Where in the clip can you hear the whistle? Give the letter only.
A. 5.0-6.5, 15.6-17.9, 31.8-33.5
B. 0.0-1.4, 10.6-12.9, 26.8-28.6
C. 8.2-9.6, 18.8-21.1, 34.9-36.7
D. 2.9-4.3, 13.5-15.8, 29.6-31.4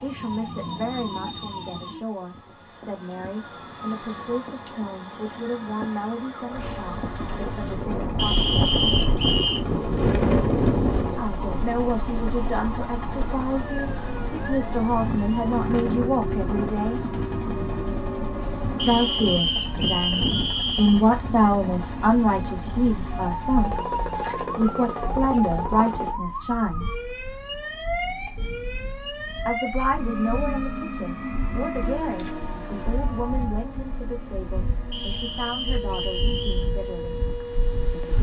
C.